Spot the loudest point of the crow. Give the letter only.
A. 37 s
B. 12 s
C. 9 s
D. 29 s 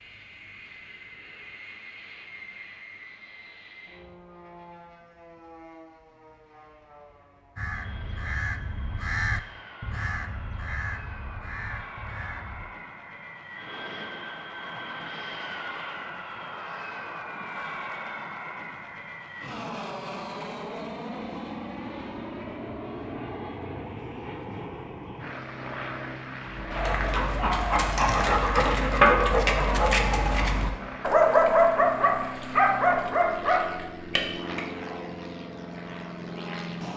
C.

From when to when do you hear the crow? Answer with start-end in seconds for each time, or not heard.
7.5-12.7.